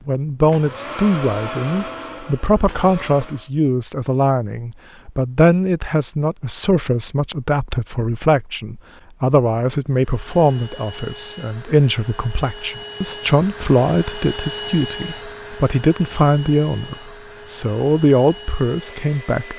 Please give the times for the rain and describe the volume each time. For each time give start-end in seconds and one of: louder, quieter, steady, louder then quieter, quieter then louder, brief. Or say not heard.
not heard.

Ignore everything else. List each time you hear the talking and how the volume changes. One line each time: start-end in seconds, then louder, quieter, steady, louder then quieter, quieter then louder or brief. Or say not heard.
0.1-19.5 steady.